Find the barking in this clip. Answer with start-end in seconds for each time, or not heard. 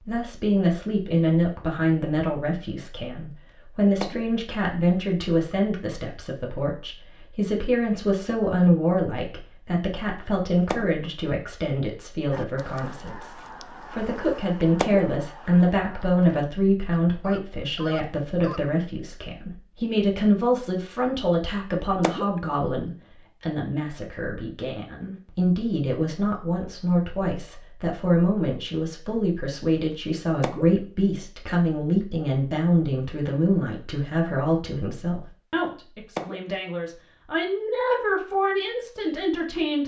not heard.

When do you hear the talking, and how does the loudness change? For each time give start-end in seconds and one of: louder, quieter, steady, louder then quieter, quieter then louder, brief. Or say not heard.
0.0-39.8 steady.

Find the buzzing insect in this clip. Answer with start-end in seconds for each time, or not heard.
not heard.